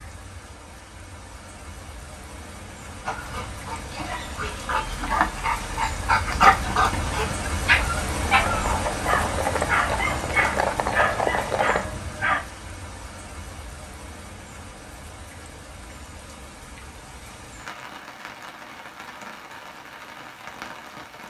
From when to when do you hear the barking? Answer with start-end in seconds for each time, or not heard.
3.0-12.4.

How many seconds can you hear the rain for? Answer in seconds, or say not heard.
21 s.